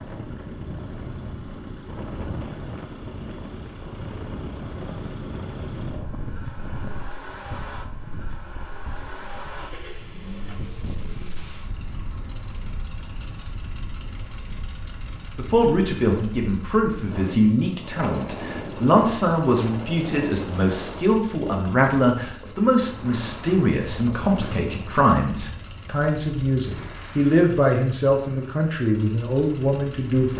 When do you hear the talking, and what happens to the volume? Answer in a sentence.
The talking can be heard from 15.3 to 30.3 s, at a steady volume.